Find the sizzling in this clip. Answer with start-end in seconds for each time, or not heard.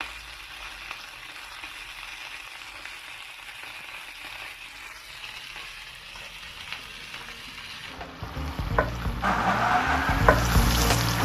0.0-11.1.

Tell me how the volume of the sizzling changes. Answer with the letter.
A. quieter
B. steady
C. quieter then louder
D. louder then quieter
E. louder
E.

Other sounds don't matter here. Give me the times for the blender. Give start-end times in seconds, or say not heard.
9.2-11.1.